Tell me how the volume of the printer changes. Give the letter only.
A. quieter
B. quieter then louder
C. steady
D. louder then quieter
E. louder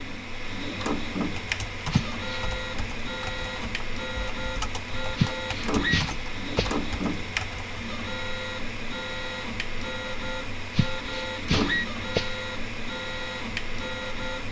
C.